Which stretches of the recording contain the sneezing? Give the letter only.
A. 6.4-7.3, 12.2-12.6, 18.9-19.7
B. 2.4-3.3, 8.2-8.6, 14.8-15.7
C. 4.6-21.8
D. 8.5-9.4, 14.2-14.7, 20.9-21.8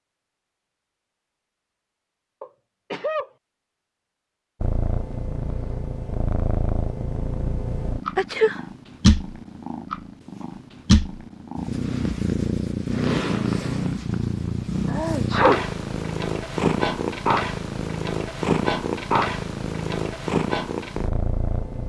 B.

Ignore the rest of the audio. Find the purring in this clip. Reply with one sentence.
The purring can be heard from 4.6 to 21.8 s.